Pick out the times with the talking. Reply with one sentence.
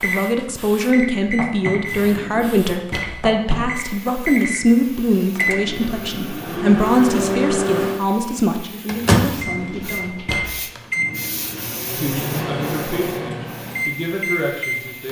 You can hear the talking from 0.0 to 10.2 s and from 11.9 to 15.0 s.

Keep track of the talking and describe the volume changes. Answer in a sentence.
The volume of the talking goes down.